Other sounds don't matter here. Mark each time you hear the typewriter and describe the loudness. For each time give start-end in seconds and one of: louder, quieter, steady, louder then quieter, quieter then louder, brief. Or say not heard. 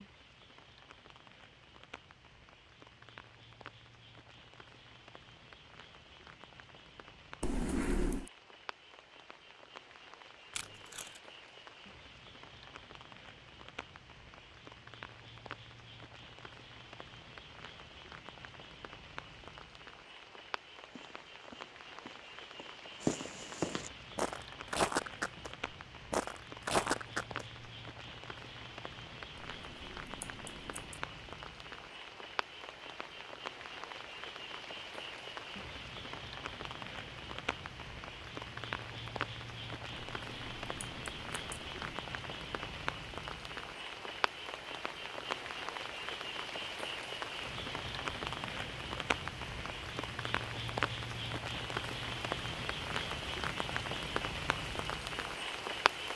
not heard.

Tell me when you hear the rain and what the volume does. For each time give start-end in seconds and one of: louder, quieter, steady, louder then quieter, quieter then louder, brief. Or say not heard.
0.0-56.1 louder.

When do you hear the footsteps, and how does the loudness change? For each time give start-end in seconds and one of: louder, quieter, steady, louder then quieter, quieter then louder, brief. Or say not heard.
20.9-25.5 louder
26.1-27.4 brief.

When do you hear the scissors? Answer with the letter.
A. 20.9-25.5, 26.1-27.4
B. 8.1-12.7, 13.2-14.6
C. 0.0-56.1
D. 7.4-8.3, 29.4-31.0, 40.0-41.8
D.